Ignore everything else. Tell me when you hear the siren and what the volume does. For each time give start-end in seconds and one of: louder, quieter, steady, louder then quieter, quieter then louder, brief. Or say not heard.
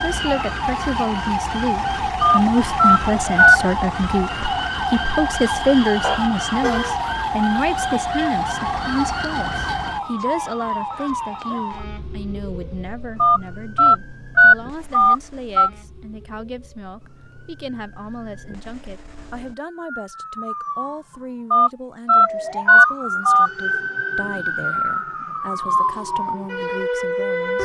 0.0-27.5 quieter then louder.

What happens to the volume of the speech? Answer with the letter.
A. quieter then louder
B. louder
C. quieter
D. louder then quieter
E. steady
C.